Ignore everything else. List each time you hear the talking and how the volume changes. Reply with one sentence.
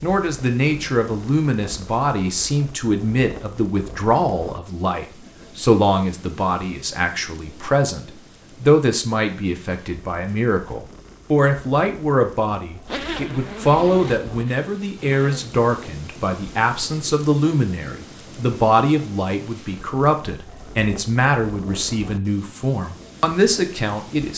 The talking can be heard from 0.0 to 24.3 s, at a steady volume.